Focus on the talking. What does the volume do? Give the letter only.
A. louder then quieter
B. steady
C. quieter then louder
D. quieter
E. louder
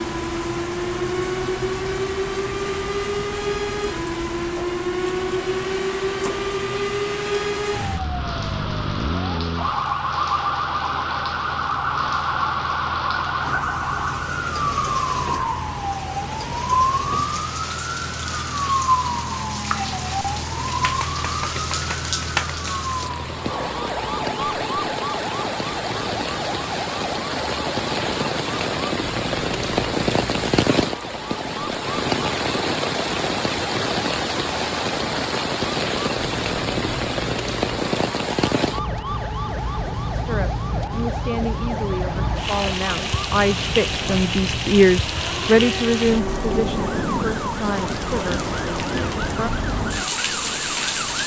A.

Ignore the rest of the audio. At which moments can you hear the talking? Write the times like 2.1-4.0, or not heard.
40.1-49.5.